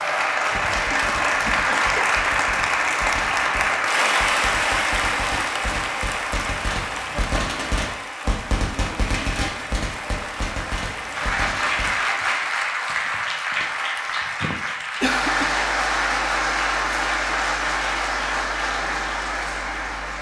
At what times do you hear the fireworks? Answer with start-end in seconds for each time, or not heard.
0.5-12.0.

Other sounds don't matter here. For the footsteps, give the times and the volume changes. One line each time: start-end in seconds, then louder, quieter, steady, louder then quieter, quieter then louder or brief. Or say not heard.
not heard.